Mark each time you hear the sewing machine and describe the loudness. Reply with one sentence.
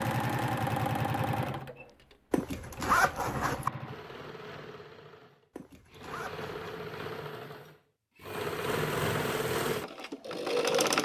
The sewing machine can be heard from 0.0 to 10.9 s, getting quieter then louder.